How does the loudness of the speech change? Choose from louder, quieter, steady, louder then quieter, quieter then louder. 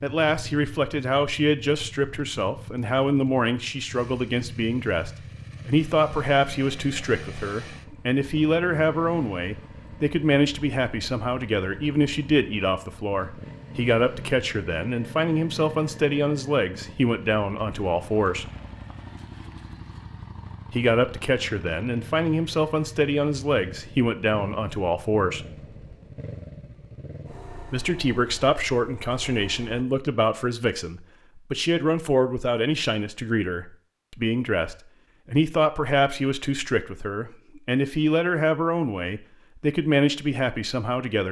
steady.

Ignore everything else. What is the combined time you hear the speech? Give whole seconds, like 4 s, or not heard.
37 s.